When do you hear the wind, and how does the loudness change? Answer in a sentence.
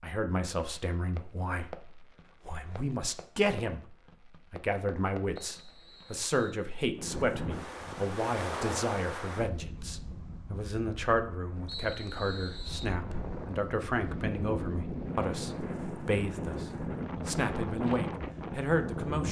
The wind can be heard from 7.0 to 19.2 s, getting quieter then louder.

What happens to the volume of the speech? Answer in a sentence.
The volume of the speech stays about the same.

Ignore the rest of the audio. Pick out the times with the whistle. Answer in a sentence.
The whistle can be heard from 5.4 to 6.7 s and from 11.7 to 12.9 s.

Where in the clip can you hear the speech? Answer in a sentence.
The speech can be heard from 0.0 to 19.2 s.